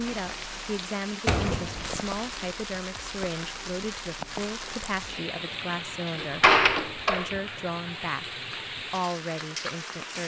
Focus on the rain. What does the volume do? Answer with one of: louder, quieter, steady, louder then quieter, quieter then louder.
steady.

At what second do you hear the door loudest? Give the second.
7 s.